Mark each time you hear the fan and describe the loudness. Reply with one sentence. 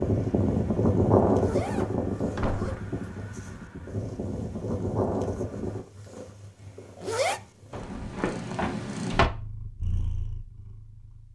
The fan can be heard from 0.0 to 5.8 s, getting quieter then louder.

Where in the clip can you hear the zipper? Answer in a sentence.
You can hear the zipper from 1.3 to 3.0 s and from 6.8 to 7.4 s.